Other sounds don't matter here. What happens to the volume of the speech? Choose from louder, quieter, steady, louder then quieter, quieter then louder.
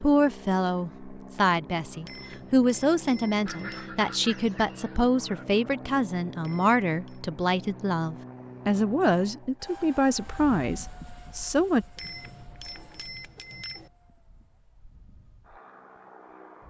steady.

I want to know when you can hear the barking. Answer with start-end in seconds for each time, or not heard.
not heard.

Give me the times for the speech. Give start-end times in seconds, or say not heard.
0.0-11.8.